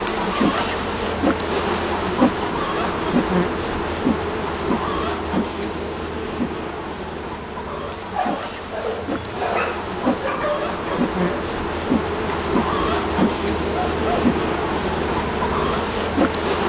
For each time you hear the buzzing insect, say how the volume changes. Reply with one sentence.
You can hear the buzzing insect from 0.0 to 16.6 s, getting quieter then louder.